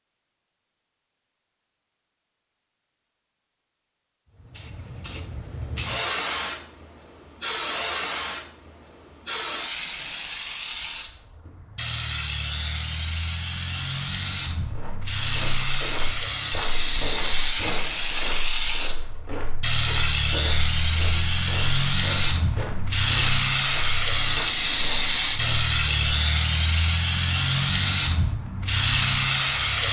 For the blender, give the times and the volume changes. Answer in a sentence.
You can't hear the blender here.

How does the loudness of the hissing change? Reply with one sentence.
The loudness of the hissing goes up.